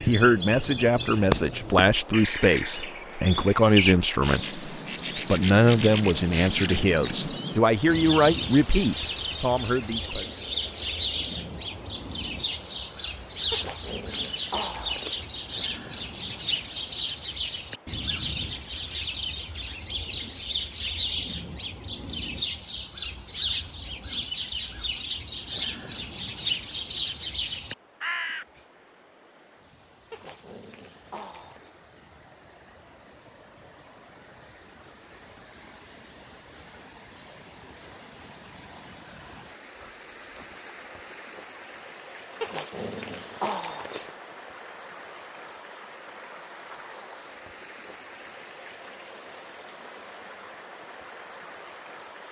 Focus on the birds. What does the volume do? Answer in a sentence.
The loudness of the birds stays about the same.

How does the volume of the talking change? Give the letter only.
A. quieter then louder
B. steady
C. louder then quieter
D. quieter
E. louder
B.